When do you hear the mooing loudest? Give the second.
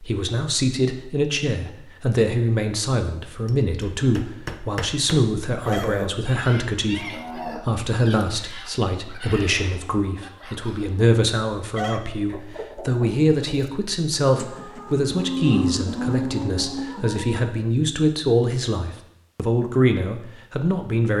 16 s.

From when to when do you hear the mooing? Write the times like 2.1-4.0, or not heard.
5.6-6.1, 7.0-7.6, 14.8-16.9.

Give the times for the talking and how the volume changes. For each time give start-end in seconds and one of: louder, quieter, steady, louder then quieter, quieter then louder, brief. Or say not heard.
0.0-21.1 steady.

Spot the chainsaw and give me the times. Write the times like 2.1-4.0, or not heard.
not heard.